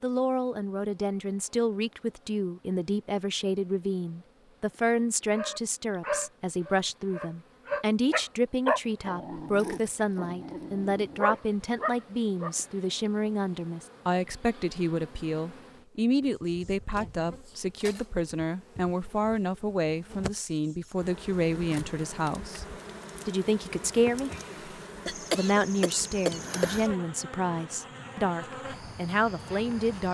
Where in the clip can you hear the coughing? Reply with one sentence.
You can hear the coughing from 25.1 to 26.9 s.